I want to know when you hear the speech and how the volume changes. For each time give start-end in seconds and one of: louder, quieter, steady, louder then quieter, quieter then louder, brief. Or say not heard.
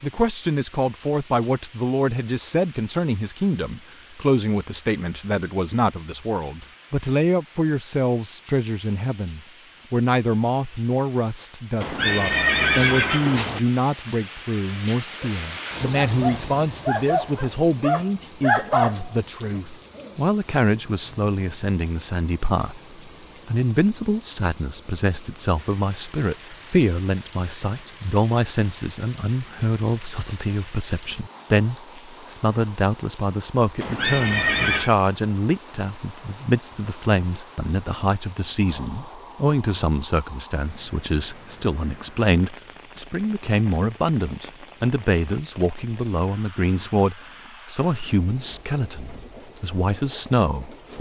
0.0-50.9 steady.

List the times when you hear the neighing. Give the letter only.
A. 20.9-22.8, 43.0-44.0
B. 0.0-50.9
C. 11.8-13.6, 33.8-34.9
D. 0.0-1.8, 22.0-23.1
C.